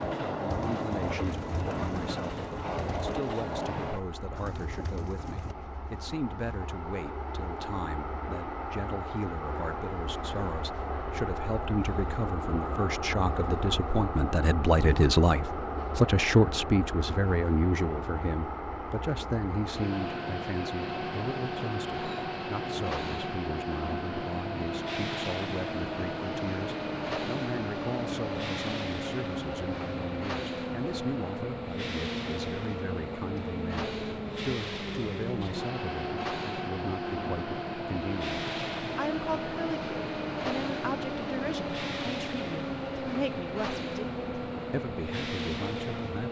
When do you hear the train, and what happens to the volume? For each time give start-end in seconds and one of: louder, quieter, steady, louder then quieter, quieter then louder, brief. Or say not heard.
0.0-46.2 steady.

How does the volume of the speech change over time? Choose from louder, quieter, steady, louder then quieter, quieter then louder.
louder then quieter.